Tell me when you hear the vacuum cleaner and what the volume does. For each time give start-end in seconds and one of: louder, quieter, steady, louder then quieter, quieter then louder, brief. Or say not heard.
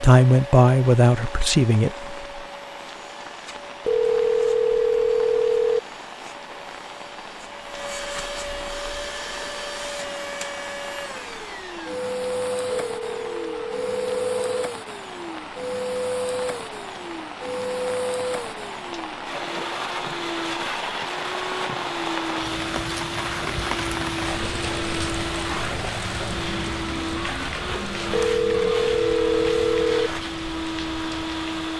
0.2-31.7 louder.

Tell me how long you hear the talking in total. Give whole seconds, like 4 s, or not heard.
2 s.